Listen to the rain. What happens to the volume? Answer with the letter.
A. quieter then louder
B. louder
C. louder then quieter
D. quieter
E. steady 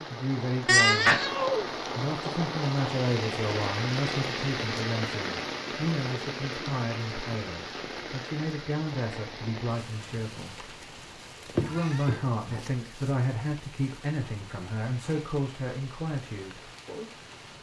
D.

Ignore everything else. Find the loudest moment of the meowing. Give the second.
1 s.